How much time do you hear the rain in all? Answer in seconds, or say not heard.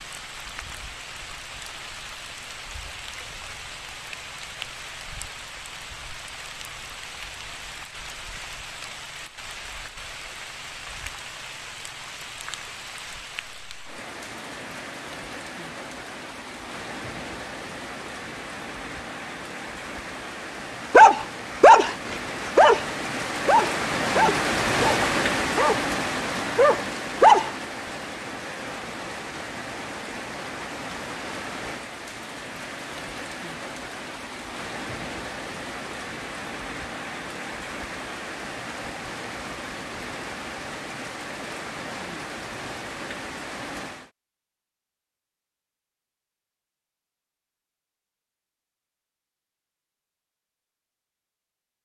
44 s.